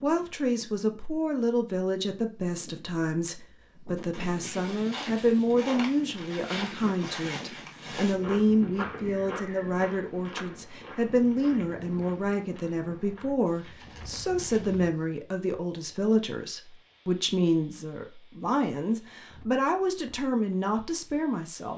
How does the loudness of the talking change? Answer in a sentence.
The volume of the talking stays about the same.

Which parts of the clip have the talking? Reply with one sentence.
You can hear the talking from 0.0 to 21.7 s.